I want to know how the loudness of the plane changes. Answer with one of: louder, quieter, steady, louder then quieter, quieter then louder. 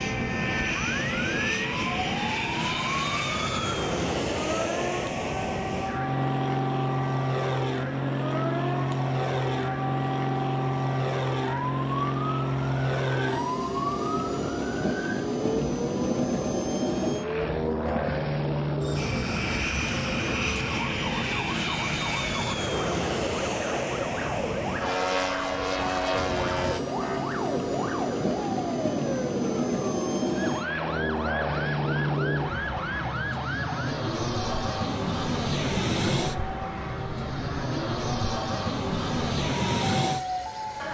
steady.